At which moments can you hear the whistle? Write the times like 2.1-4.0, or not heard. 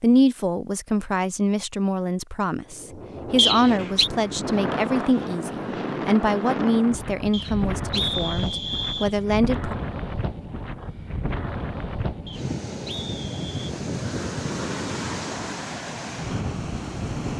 3.4-4.1, 7.3-9.2, 12.2-13.8.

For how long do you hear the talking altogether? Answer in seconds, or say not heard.
10 s.